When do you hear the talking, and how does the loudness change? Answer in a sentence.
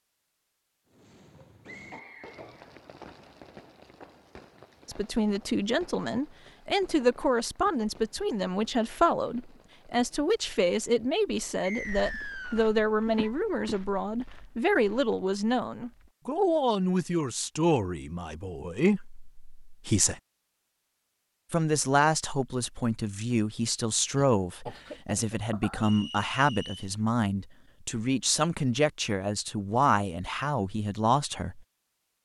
You can hear the talking from 4.8 to 20.2 s, at a steady volume; and from 21.5 to 31.6 s, at a steady volume.